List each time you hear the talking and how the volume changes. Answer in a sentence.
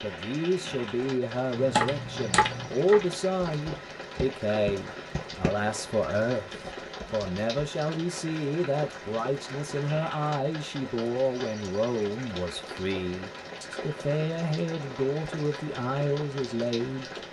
You can hear the talking from 0.0 to 17.1 s, at a steady volume.